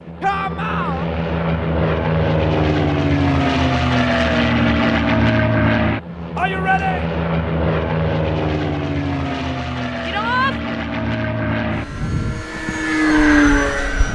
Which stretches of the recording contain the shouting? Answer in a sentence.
You can hear the shouting from 0.2 to 1.1 s, from 6.3 to 7.0 s and from 10.0 to 10.6 s.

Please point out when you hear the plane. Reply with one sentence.
The plane can be heard from 0.0 to 14.0 s.